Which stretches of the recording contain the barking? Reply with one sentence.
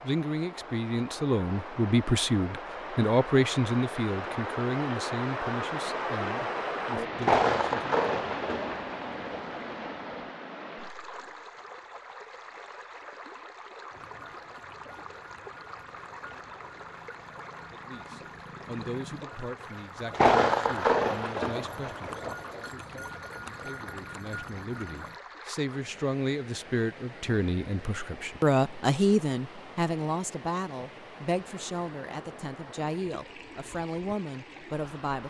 The barking can't be heard in this clip.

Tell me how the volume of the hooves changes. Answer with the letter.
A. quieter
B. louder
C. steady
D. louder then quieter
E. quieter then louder
B.